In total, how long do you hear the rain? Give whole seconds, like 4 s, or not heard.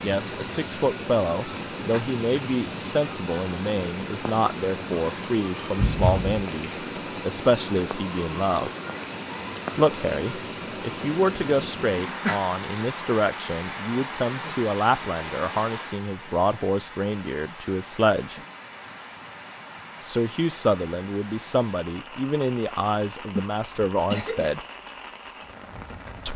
26 s.